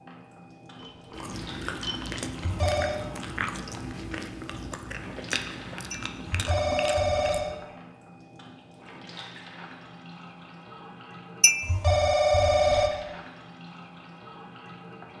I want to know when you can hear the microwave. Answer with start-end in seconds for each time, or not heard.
not heard.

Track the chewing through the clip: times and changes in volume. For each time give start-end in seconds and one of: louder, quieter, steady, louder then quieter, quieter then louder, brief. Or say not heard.
1.1-7.4 steady.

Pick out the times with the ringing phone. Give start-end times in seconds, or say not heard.
2.4-3.0, 6.2-7.5, 11.6-12.9.